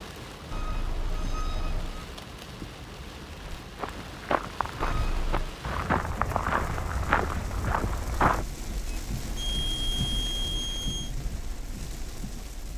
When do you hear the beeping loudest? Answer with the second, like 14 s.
10 s.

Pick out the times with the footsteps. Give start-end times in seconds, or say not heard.
3.4-8.4.